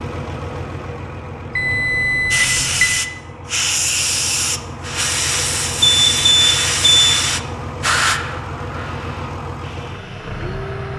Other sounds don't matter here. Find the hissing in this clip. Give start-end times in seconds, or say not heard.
2.3-10.9.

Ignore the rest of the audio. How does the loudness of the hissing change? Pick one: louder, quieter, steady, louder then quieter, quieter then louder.
quieter.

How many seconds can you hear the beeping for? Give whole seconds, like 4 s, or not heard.
3 s.